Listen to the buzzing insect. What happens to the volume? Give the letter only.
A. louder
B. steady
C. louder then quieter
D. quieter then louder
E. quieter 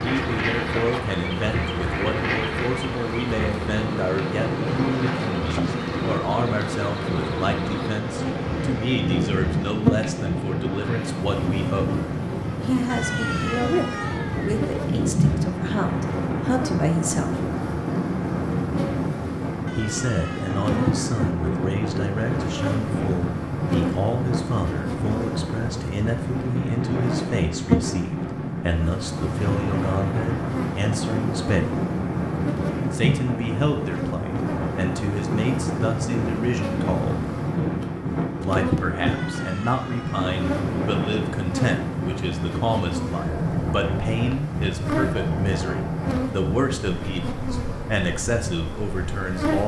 B.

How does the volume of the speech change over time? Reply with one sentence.
The loudness of the speech stays about the same.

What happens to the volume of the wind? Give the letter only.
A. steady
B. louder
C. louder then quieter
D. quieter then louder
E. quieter
A.